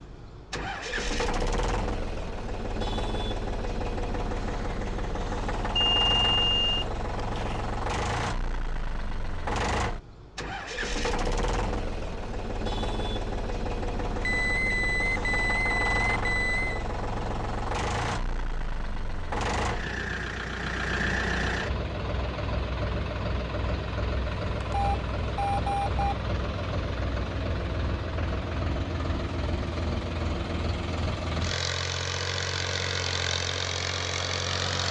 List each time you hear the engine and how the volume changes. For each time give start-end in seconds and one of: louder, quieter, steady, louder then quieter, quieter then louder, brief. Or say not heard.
0.0-34.8 steady.